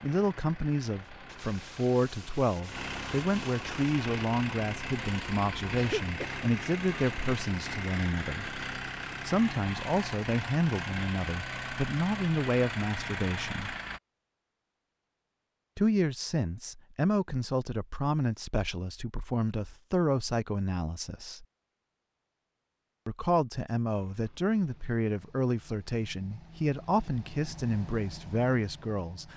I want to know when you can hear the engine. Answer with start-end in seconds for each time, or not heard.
0.0-14.0, 23.9-29.3.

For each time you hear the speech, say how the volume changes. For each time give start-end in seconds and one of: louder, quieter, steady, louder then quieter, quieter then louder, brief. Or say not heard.
0.0-13.8 steady
15.8-21.4 steady
23.1-29.3 steady.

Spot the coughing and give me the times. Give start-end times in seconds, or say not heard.
5.8-6.9.